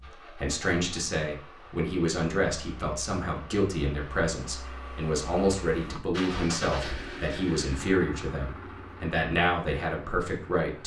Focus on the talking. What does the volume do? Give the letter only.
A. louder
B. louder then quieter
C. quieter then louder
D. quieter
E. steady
E.